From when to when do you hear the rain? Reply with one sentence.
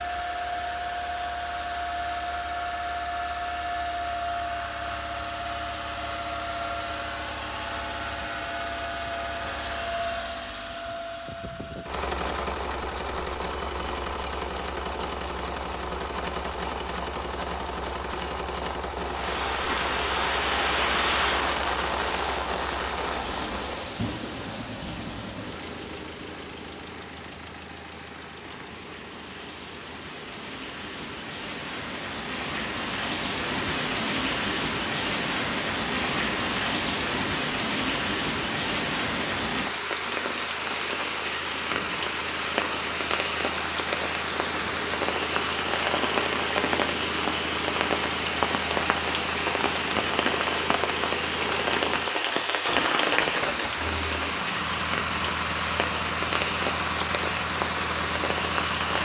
The rain can be heard from 19.1 to 58.9 s.